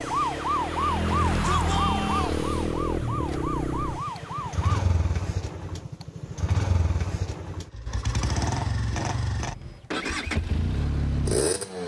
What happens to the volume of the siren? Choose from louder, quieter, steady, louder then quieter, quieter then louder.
quieter.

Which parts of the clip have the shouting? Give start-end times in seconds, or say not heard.
1.2-2.5.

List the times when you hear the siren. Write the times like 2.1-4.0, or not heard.
0.0-4.8.